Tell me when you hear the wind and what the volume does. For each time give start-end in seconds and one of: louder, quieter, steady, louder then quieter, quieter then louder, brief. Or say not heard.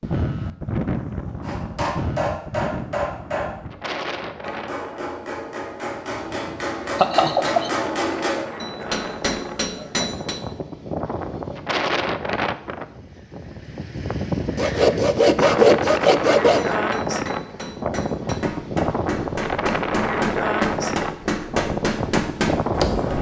0.0-23.1 quieter then louder.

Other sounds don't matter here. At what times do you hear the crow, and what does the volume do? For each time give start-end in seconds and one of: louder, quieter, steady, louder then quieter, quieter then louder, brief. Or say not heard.
not heard.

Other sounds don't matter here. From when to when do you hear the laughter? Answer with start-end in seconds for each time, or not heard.
7.0-7.7.